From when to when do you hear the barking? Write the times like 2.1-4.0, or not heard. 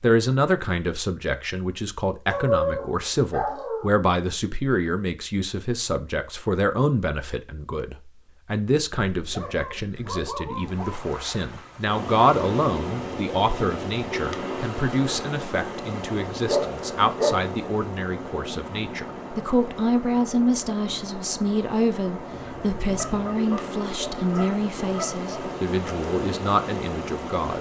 2.2-4.0, 9.1-11.1, 16.4-17.5, 22.9-25.2.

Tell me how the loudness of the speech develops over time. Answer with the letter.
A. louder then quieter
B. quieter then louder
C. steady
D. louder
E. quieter
C.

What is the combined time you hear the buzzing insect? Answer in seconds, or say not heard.
not heard.